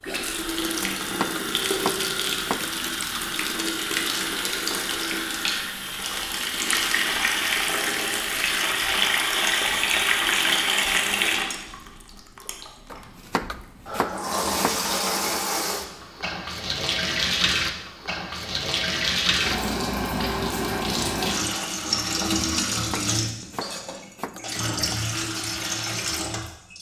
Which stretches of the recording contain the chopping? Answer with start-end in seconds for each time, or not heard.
0.8-2.8, 12.9-14.8, 22.7-25.0.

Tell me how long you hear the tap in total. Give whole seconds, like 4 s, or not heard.
27 s.